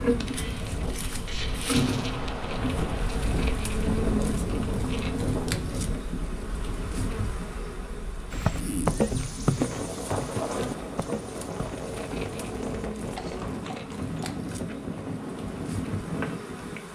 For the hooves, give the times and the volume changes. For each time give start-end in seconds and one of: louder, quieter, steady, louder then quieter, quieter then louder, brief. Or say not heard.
8.3-14.4 quieter then louder.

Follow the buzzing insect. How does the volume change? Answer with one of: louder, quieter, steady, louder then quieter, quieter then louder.
quieter.